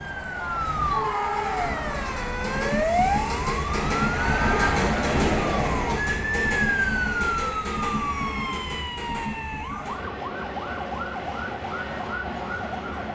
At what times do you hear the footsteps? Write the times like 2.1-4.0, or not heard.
not heard.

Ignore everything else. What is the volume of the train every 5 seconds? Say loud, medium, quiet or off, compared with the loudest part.
loud, loud, medium.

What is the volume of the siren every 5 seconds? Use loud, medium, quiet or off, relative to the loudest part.
loud, loud, medium.